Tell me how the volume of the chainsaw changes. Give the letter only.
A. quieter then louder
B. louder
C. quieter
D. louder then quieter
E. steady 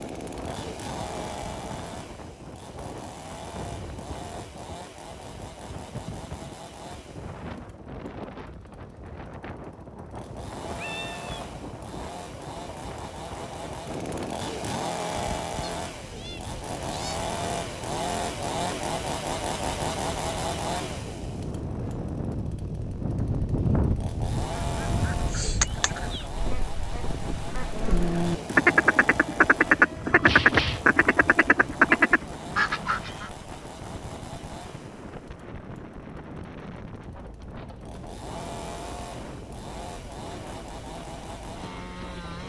D.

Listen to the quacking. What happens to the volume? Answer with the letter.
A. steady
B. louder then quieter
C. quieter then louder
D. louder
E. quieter
D.